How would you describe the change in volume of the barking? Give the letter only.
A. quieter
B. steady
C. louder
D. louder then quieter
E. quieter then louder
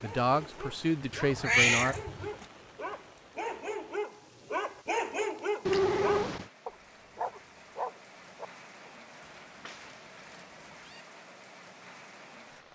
C.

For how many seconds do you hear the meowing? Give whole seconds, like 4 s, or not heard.
4 s.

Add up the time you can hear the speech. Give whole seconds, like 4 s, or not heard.
2 s.